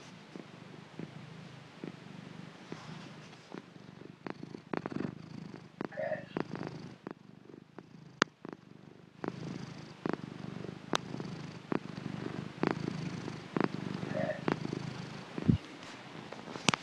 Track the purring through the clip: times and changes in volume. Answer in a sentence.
You can hear the purring from 0.0 to 16.7 s, getting louder.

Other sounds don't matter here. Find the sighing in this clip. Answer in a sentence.
The sighing can be heard from 5.9 to 6.5 s and from 14.1 to 15.0 s.